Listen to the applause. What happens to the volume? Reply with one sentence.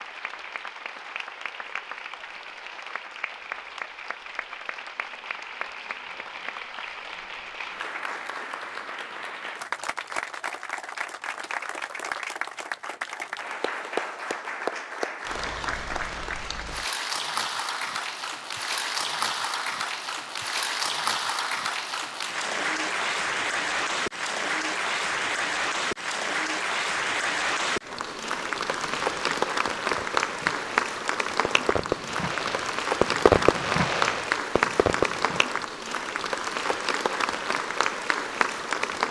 The volume of the applause goes up.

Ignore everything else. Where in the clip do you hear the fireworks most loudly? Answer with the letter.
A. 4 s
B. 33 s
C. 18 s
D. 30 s
B.